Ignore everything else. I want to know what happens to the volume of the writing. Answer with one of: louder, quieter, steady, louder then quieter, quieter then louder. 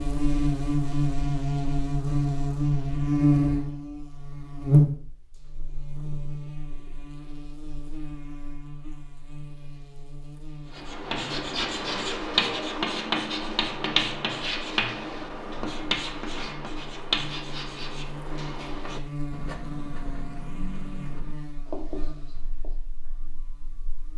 quieter.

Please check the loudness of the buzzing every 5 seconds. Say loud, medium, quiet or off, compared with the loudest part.
loud, quiet, quiet, quiet, quiet.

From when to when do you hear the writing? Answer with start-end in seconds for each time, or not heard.
10.7-22.8.